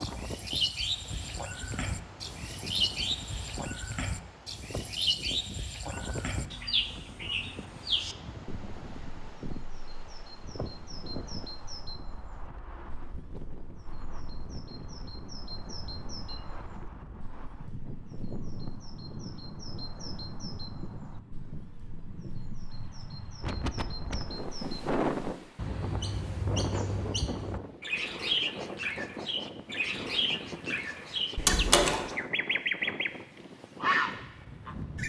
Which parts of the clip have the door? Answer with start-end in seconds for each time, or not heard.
31.4-32.0.